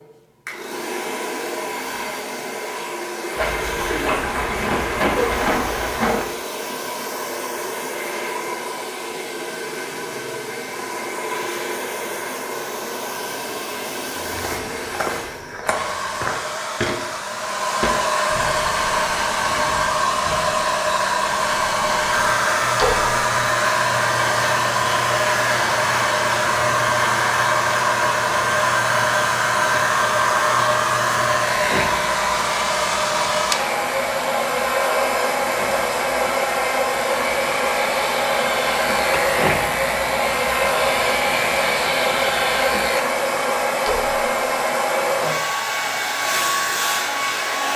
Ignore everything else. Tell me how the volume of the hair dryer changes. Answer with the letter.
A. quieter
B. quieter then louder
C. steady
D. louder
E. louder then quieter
D.